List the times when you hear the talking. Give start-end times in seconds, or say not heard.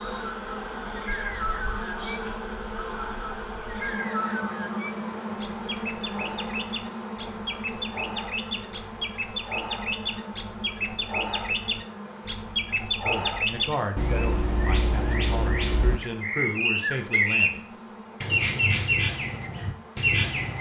12.9-17.7.